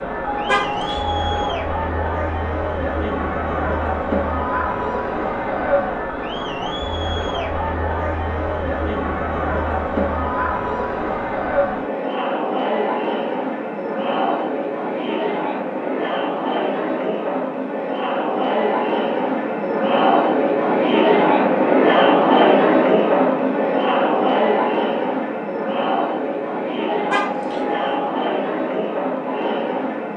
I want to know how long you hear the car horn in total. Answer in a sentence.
The car horn can be heard for 2 seconds in total.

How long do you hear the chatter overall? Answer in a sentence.
You can hear the chatter for 30 seconds altogether.